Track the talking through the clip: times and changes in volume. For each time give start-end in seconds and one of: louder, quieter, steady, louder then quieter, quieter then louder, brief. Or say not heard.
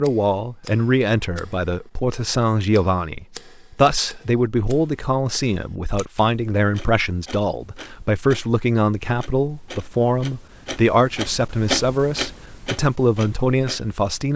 0.0-14.3 steady.